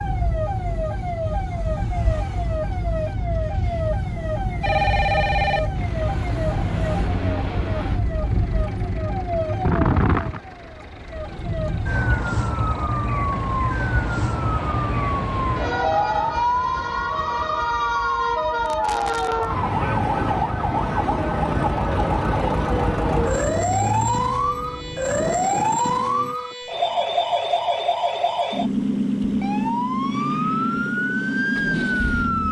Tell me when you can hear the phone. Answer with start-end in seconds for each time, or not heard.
4.6-5.7.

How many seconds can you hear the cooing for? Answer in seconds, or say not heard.
not heard.